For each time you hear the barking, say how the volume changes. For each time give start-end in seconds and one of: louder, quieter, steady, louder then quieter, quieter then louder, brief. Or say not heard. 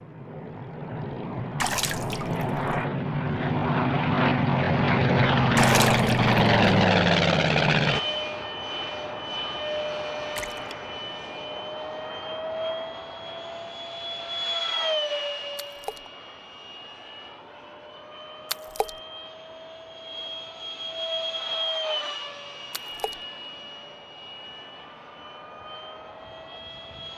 not heard.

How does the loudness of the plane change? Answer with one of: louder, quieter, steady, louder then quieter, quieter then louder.
quieter.